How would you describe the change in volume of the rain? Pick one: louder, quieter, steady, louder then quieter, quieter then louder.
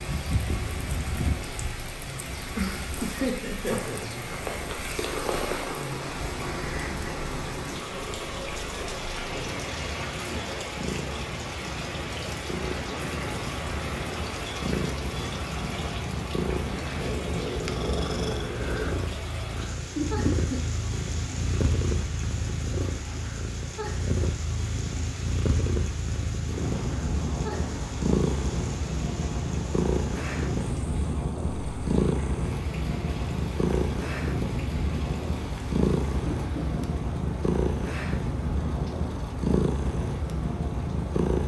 quieter.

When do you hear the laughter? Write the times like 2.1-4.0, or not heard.
2.5-4.0, 19.9-20.6, 36.2-36.9.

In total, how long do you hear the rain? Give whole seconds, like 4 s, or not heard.
41 s.